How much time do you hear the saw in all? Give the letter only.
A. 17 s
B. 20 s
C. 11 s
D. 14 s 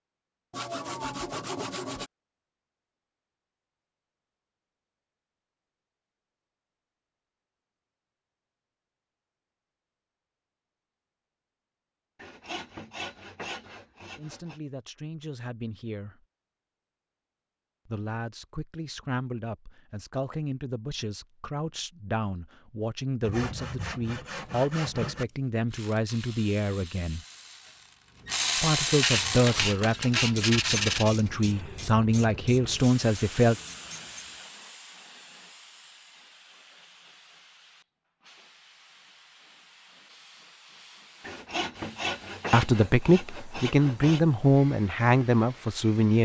C.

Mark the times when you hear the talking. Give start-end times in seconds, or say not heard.
14.2-16.2, 17.9-27.2, 28.6-33.5, 42.5-46.2.